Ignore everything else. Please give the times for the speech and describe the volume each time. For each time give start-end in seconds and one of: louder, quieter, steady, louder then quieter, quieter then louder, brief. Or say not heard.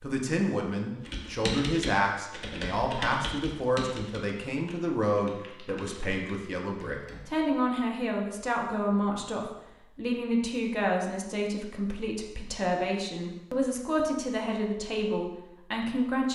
0.0-16.3 steady.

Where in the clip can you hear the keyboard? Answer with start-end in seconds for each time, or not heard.
0.9-7.3.